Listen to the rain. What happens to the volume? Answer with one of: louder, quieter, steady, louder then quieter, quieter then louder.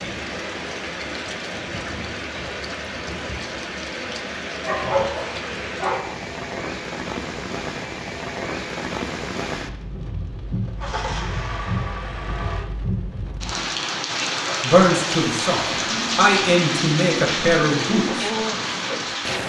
louder.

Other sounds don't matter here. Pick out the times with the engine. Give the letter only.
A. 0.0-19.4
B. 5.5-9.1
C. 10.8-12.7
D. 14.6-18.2
C.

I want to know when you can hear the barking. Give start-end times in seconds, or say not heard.
4.6-6.0.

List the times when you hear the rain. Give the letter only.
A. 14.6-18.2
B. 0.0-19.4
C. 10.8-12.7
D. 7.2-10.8
B.